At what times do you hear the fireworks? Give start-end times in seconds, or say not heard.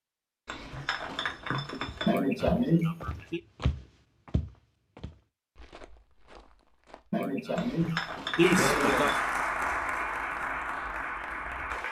not heard.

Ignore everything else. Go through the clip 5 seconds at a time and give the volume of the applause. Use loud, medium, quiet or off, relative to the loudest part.
off, loud, medium.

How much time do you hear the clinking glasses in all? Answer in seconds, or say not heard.
3 s.